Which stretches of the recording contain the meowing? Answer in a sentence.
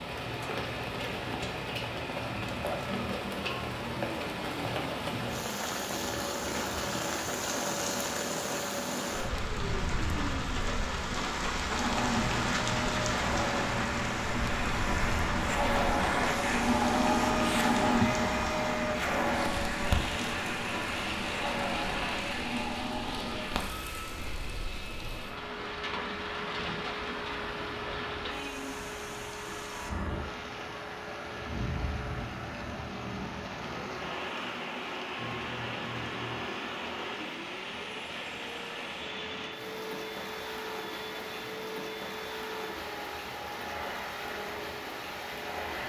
You can hear the meowing from 11.9 to 14.6 s and from 35.1 to 36.5 s.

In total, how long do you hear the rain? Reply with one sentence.
The rain can be heard for 46 seconds in total.